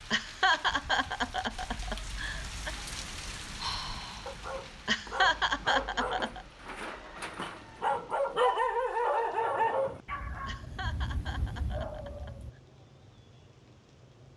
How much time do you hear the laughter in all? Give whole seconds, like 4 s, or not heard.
6 s.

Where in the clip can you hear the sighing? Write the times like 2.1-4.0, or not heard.
3.1-4.3.